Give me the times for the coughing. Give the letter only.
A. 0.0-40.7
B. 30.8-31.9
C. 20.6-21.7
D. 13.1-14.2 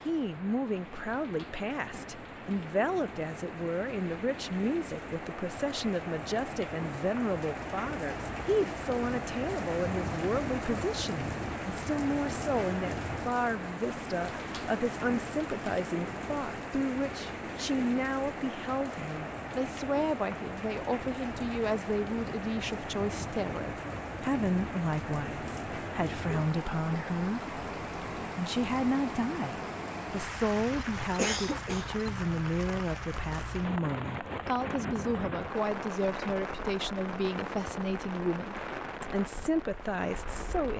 B.